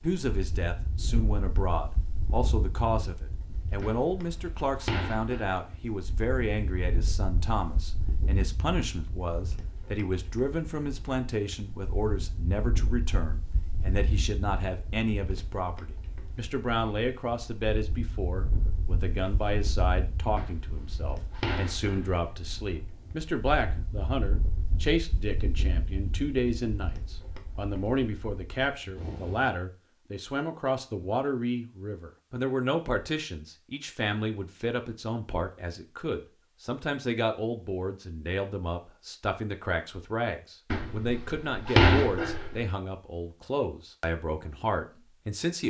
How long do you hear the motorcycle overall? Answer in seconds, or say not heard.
not heard.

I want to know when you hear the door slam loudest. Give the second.
42 s.